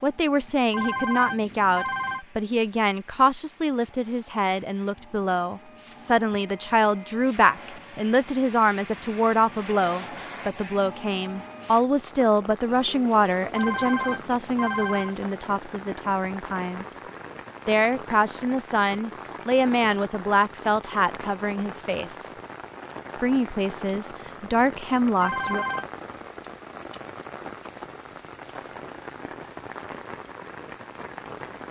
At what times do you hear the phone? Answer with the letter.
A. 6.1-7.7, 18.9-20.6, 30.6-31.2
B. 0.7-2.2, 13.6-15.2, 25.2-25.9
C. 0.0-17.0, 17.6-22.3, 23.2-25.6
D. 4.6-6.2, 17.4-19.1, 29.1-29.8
B.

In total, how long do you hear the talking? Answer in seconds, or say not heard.
24 s.